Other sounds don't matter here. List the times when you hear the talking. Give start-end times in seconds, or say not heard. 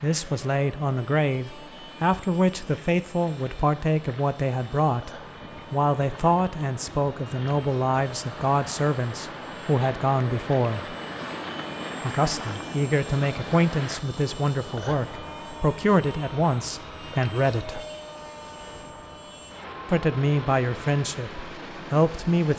0.0-10.9, 12.0-17.9, 19.9-22.5.